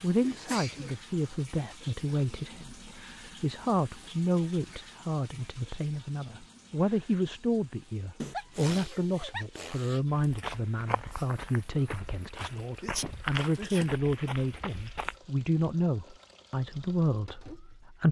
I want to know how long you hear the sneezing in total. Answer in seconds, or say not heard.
4 s.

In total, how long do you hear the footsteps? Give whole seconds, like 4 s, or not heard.
5 s.